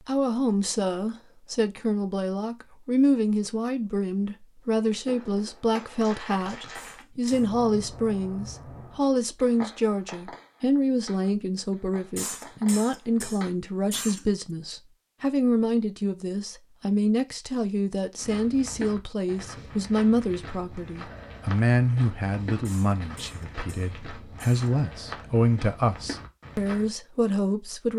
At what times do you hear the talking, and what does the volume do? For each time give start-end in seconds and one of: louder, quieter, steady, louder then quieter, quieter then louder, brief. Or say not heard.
0.0-27.9 steady.